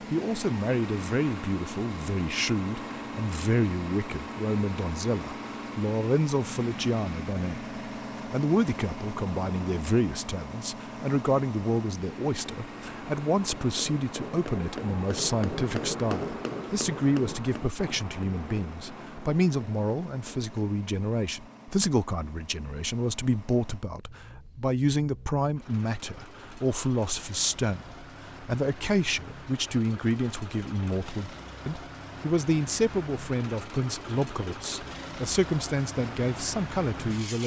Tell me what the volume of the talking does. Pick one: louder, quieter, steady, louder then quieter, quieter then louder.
steady.